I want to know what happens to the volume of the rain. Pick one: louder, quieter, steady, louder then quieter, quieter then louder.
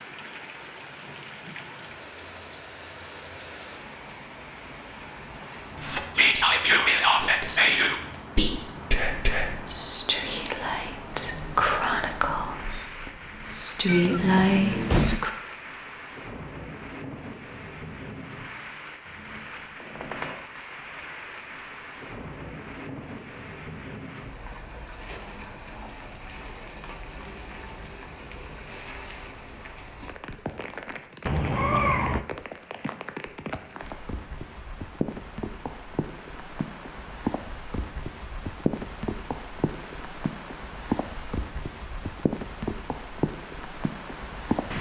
louder.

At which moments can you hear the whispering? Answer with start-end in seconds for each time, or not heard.
5.8-15.3.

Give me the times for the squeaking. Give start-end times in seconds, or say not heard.
19.8-20.4.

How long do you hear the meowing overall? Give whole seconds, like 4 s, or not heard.
2 s.